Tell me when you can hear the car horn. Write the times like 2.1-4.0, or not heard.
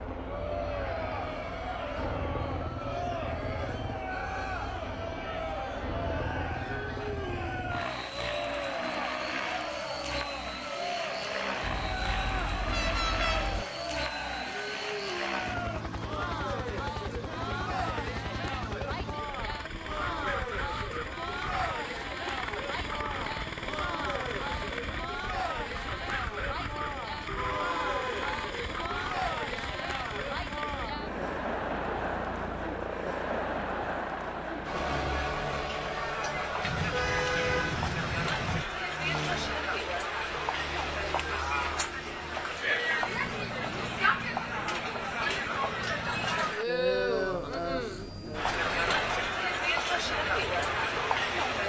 11.6-13.7, 27.2-28.4, 36.6-38.6.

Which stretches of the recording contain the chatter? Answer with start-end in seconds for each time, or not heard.
0.1-51.6.